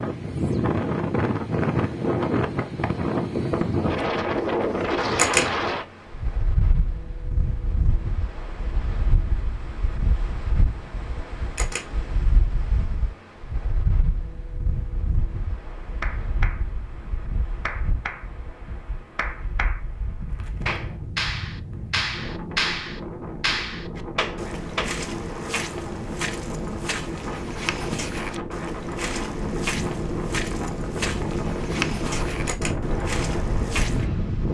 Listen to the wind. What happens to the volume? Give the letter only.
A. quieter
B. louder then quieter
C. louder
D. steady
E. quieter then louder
E.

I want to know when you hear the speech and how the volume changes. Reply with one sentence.
The speech can't be heard in this clip.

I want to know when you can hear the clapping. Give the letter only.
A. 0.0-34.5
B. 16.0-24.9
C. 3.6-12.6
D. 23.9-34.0
B.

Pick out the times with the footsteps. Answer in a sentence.
The footsteps can be heard from 23.9 to 34.0 s.